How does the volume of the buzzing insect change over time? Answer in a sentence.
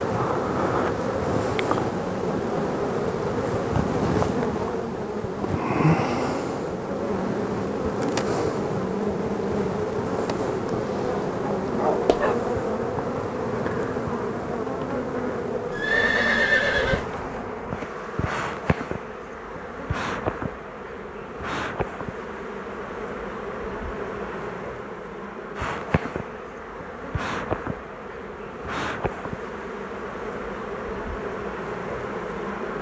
The loudness of the buzzing insect goes down.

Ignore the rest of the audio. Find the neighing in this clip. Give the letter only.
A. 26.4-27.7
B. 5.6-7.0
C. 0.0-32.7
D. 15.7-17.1
D.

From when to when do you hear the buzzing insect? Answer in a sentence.
The buzzing insect can be heard from 0.0 to 32.7 s.